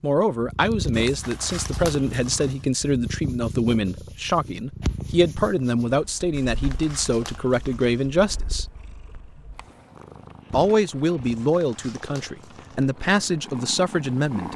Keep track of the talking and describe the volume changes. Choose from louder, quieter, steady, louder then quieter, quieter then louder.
steady.